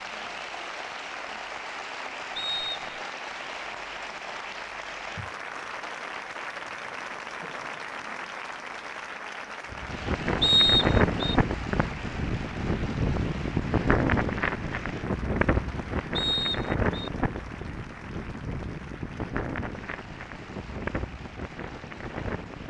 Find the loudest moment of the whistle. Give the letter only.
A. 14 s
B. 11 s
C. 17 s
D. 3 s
B.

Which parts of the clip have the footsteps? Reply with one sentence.
The footsteps can't be heard in this clip.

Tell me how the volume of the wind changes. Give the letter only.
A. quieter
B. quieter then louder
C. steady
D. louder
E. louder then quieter
A.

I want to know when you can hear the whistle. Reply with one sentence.
You can hear the whistle from 2.4 to 3.0 s, from 10.4 to 11.3 s and from 16.1 to 17.1 s.